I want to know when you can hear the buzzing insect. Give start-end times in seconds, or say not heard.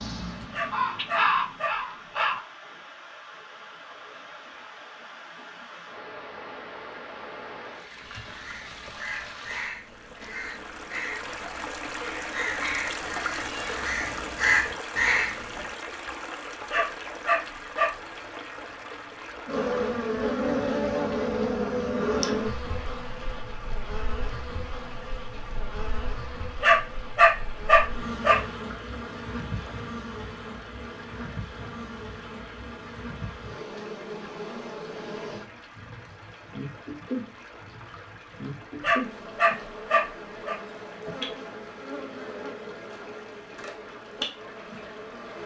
19.4-45.4.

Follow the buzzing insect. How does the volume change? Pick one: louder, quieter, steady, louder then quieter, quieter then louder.
quieter.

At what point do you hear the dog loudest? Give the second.
27 s.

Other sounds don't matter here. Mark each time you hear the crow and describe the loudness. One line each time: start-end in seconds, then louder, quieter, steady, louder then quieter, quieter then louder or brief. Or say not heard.
0.0-2.4 brief
8.0-15.8 louder.